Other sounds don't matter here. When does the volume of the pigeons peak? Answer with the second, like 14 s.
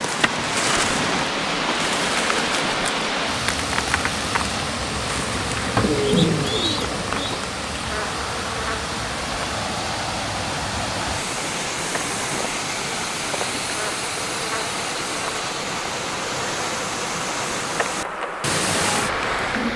6 s.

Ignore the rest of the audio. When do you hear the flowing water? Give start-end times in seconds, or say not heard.
0.0-19.7.